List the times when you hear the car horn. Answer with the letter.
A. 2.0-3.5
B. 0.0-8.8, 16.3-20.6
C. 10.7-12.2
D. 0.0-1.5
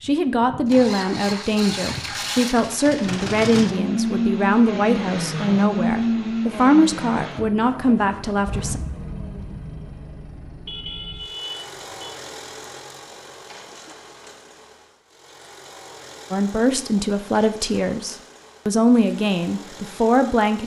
C.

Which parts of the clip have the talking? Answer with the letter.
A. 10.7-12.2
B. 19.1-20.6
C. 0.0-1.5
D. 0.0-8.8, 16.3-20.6
D.